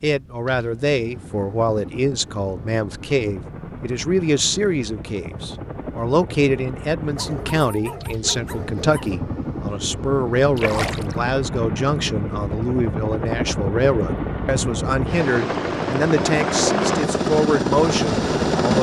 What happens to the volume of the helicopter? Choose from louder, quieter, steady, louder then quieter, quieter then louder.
louder.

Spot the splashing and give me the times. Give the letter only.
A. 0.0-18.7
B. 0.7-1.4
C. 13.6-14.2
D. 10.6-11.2
D.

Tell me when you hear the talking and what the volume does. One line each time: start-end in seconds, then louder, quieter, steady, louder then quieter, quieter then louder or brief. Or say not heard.
0.0-18.7 steady.